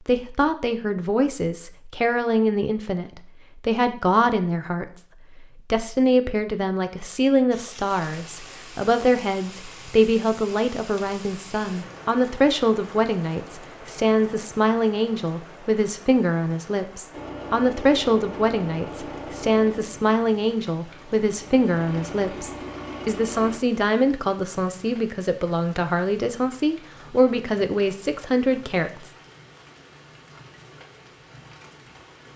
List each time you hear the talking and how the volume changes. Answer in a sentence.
The talking can be heard from 0.1 to 29.1 s, at a steady volume.